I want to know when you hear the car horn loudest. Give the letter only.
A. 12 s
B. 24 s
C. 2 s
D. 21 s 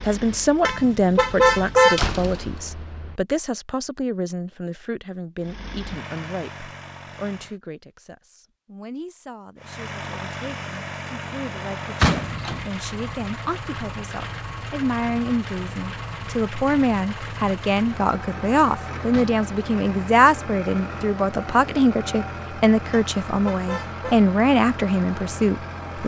C.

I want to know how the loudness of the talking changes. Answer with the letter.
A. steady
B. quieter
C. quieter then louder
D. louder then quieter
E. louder
C.